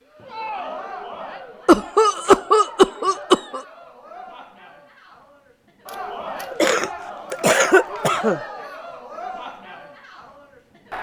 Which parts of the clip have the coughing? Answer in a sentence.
The coughing can be heard from 1.6 to 3.6 s and from 6.5 to 8.4 s.